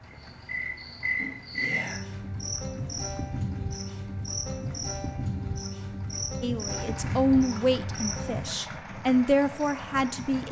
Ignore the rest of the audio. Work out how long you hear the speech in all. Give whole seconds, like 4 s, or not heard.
4 s.